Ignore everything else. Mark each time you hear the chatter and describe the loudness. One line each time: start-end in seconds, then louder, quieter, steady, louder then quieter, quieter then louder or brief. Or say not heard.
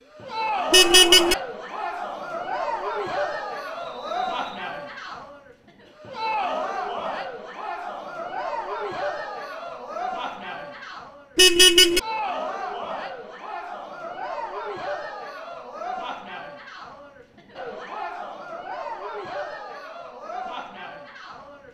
0.1-21.6 quieter.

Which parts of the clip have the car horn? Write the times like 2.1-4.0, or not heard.
0.7-1.4, 11.3-12.0.